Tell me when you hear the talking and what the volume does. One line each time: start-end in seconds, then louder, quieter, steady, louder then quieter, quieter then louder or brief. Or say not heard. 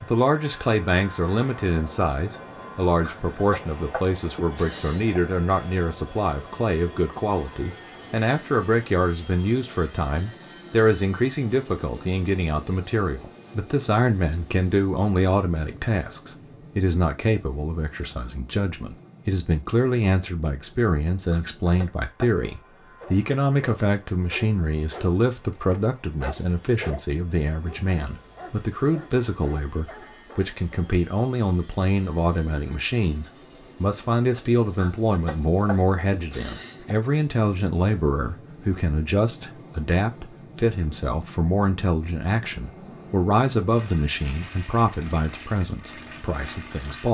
0.0-47.0 steady.